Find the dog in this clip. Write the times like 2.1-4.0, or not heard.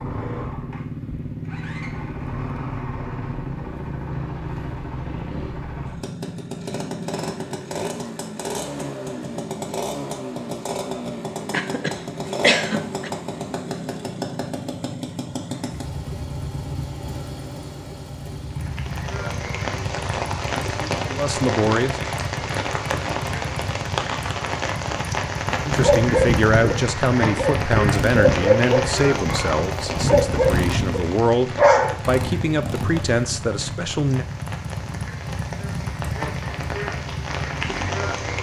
25.6-31.9.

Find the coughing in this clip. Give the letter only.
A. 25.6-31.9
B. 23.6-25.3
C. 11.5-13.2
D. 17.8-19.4
C.